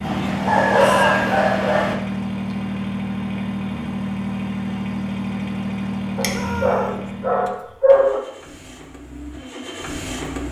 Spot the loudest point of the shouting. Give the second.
1 s.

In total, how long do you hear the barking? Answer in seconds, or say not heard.
4 s.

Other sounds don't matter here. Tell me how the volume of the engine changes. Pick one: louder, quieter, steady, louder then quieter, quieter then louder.
quieter.